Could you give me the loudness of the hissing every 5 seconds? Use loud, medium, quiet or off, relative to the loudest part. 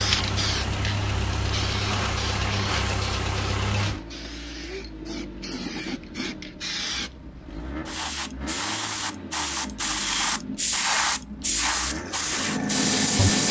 medium, medium, loud.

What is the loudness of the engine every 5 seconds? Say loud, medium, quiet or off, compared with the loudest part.
loud, medium, medium.